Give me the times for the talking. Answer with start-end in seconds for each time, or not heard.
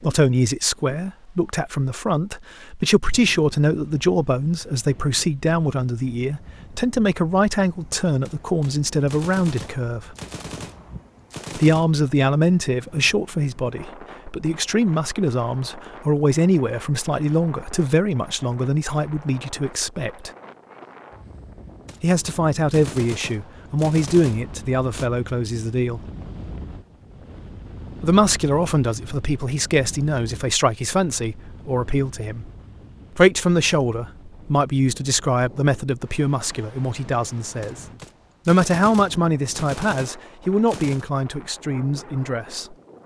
0.0-10.2, 11.6-20.3, 22.0-26.0, 28.0-32.5, 33.1-37.9, 38.5-42.8.